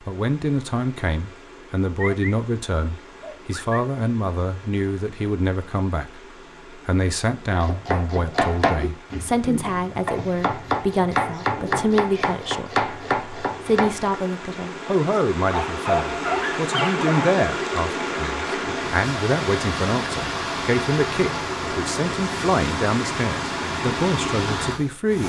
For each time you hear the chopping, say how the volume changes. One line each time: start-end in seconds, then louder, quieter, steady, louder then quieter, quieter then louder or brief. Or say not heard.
7.5-14.2 quieter then louder.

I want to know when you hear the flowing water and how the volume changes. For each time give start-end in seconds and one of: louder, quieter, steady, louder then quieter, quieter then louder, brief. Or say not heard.
0.0-25.2 louder.